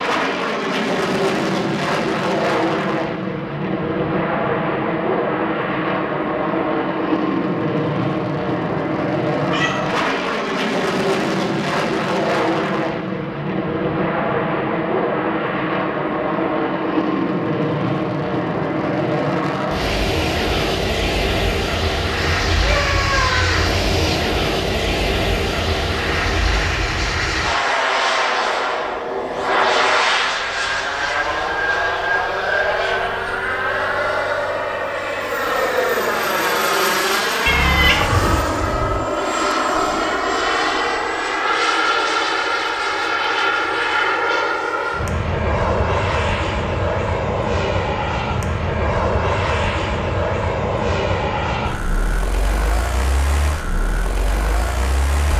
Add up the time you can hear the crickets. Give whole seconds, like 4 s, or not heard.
not heard.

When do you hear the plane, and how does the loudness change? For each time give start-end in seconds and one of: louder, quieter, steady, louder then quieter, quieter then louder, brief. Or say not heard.
0.0-55.3 steady.